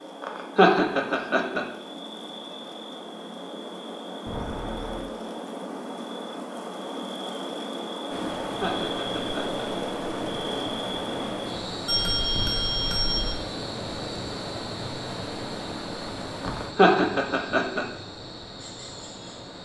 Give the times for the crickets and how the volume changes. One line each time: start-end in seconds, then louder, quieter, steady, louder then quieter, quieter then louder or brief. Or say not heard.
0.0-19.6 louder then quieter.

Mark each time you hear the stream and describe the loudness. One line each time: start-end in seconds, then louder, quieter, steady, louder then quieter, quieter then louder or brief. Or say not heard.
8.1-19.6 quieter.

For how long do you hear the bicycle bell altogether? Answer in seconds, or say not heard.
2 s.